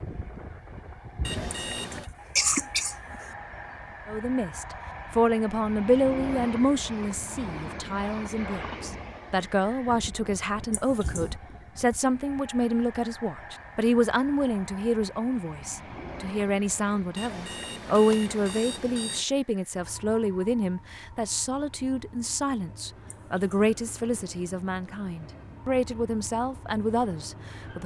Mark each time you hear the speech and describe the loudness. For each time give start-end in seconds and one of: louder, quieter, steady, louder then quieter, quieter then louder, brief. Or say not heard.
4.0-27.8 steady.